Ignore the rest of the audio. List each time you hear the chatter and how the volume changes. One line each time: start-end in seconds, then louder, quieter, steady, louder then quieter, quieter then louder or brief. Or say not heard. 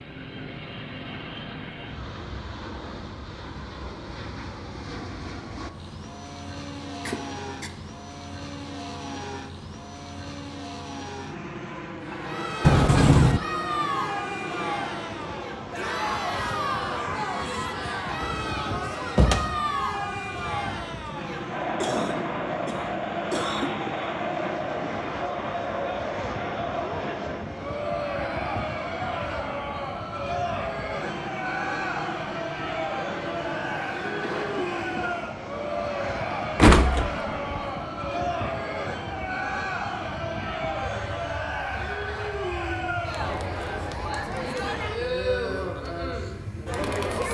12.0-47.2 steady.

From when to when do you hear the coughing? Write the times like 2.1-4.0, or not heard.
7.0-7.8, 21.8-23.8, 34.2-35.2.